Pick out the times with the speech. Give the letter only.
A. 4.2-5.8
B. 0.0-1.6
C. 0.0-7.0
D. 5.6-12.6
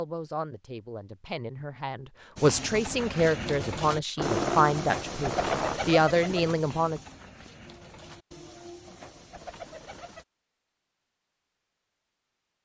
C.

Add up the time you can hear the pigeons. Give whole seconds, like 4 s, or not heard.
8 s.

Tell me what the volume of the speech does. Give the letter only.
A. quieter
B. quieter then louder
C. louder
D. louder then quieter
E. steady
C.